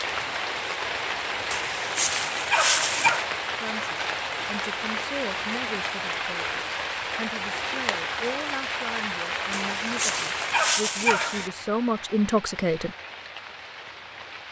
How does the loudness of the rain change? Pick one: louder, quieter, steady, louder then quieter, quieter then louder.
quieter.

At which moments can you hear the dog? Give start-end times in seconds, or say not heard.
1.5-3.3, 9.5-11.5.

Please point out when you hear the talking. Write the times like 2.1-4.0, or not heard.
3.6-12.9.